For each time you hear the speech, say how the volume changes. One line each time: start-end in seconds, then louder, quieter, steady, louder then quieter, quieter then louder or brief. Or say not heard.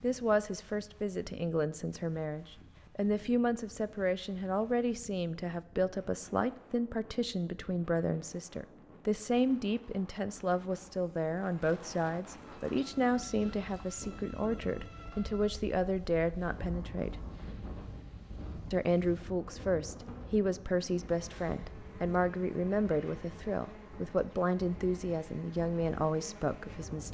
0.0-17.2 steady
18.7-27.0 steady.